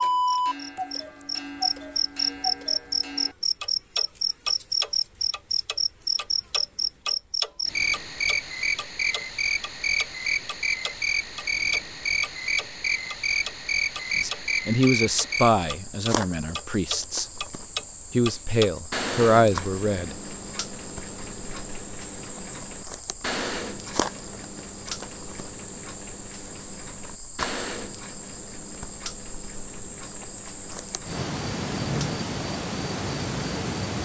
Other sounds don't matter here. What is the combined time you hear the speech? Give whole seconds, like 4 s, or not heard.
5 s.